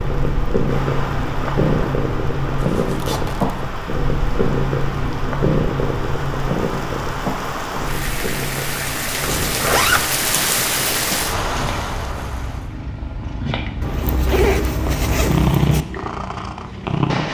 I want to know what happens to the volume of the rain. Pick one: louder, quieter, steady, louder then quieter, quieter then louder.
louder.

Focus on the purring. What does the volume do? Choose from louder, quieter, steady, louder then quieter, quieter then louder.
quieter then louder.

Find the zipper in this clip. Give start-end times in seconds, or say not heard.
2.6-3.5, 9.4-10.1, 13.8-15.8.